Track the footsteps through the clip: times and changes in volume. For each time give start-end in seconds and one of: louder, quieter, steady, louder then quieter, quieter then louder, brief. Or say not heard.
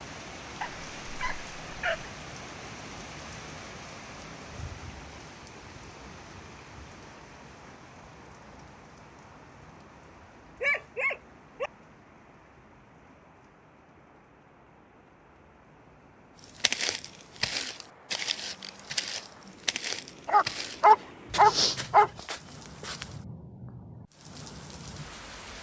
16.6-23.1 steady.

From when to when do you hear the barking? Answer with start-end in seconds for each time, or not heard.
0.6-2.0, 10.6-11.7, 20.2-22.1.